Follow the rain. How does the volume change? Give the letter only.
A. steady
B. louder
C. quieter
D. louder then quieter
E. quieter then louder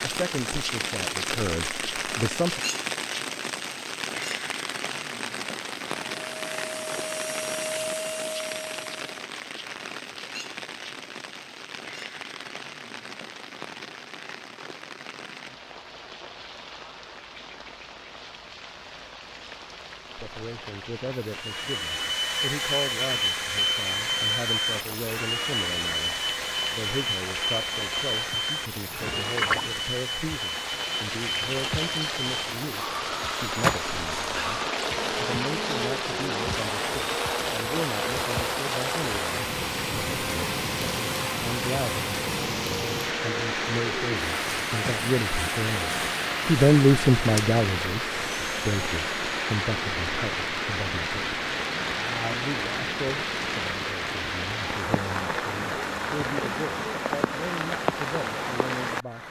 E.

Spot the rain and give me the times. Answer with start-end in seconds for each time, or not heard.
0.0-59.2.